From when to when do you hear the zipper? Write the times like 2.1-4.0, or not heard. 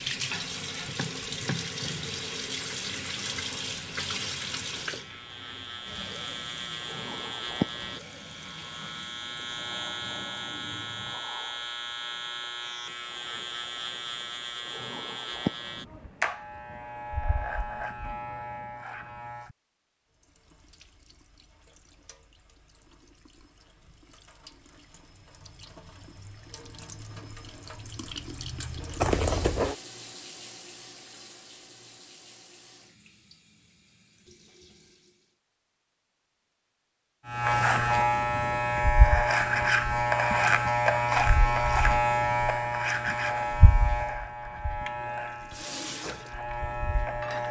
29.0-29.8.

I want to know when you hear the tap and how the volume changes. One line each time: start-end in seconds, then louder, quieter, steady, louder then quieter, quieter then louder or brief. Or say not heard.
0.0-11.2 quieter
20.1-35.4 louder then quieter
45.1-47.4 brief.